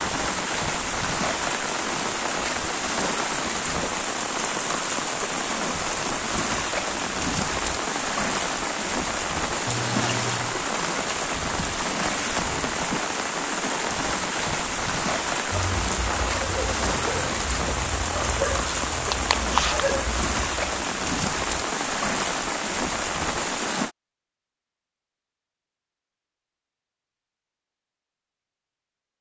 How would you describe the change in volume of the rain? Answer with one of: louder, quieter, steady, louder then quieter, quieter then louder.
steady.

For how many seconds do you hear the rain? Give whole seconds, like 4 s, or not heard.
24 s.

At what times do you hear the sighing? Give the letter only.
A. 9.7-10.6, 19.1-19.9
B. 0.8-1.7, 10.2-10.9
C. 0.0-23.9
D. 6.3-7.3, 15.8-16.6
A.